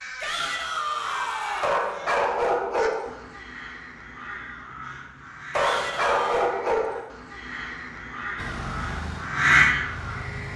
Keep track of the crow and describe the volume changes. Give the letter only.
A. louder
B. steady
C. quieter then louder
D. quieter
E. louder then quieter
A.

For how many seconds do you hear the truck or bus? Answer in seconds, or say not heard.
2 s.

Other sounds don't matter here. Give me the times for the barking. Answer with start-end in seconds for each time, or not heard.
1.6-3.1, 5.5-7.1.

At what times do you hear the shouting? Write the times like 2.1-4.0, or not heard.
0.2-1.7, 5.5-6.5.